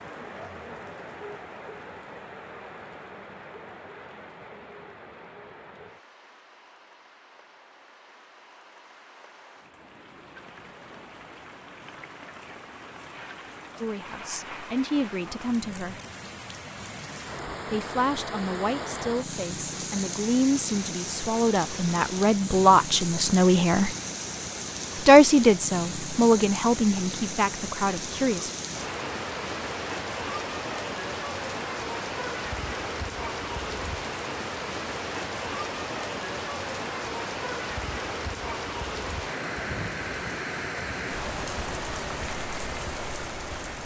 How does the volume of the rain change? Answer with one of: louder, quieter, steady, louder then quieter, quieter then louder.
louder.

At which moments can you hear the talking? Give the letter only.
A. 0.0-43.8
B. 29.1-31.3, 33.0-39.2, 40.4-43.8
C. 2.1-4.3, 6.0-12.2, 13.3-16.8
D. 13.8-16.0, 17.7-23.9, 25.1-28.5
D.